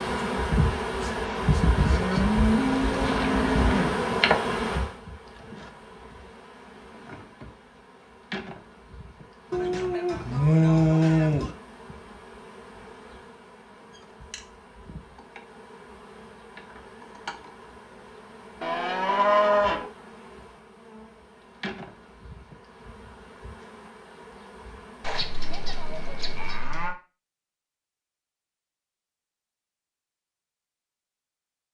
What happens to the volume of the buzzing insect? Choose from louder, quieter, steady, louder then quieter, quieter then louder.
quieter.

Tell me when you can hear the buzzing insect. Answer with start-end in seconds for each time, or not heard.
0.0-26.6.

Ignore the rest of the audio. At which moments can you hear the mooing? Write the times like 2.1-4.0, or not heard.
1.8-4.1, 9.5-11.5, 18.6-19.9, 25.0-26.9.